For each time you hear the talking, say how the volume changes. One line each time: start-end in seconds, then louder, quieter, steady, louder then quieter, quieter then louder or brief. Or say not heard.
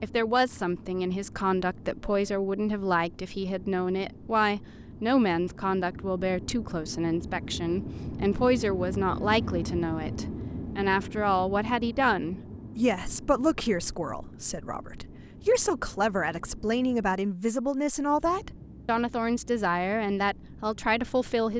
0.0-21.5 steady.